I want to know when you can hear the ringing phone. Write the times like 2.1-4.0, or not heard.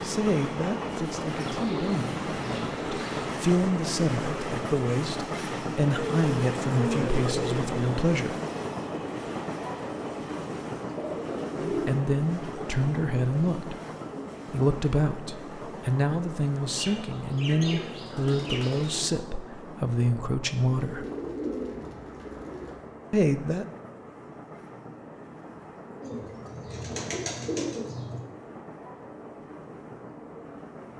not heard.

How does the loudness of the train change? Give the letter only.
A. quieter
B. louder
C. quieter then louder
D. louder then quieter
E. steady
A.